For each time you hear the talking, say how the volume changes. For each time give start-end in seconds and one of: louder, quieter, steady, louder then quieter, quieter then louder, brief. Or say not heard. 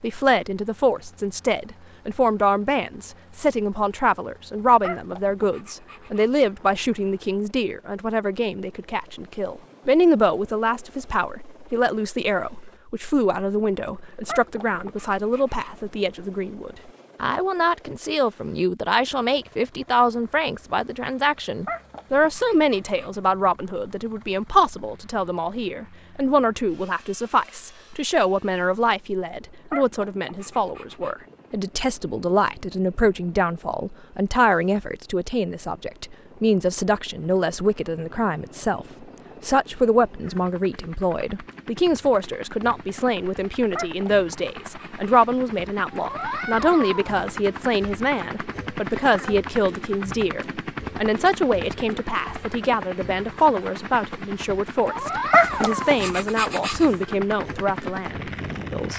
0.0-38.9 steady
39.5-58.9 steady.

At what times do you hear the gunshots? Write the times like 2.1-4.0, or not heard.
not heard.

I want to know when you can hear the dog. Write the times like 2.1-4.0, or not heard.
4.8-6.3, 14.2-15.9, 21.6-23.2, 29.7-31.1, 43.8-45.1, 55.3-56.9.